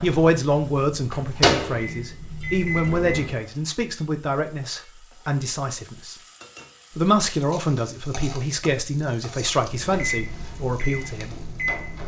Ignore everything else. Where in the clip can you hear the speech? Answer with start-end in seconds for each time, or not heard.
0.0-6.2, 7.0-11.4.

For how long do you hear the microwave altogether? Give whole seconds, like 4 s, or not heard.
6 s.